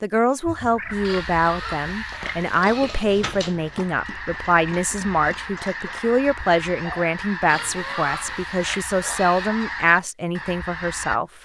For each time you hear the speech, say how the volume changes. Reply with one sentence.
The speech can be heard from 0.0 to 11.3 s, at a steady volume.